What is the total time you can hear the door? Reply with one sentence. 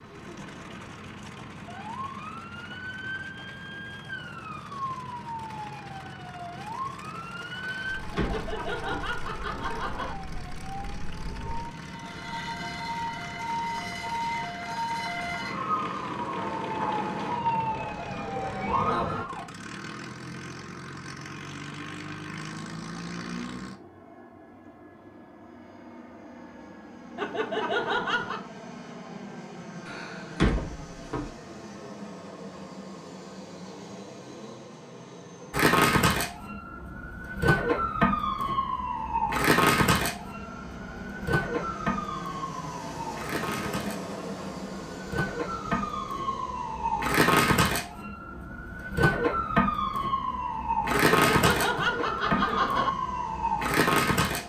You can hear the door for 3 seconds altogether.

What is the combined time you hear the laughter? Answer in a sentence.
You can hear the laughter for 5 seconds altogether.